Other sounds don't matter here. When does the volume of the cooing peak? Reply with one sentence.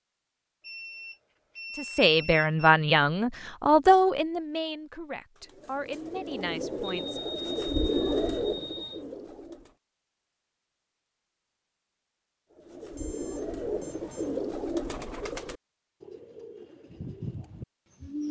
The volume of the cooing peaks at 8 seconds.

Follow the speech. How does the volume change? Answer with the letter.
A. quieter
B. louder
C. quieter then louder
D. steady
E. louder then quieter
A.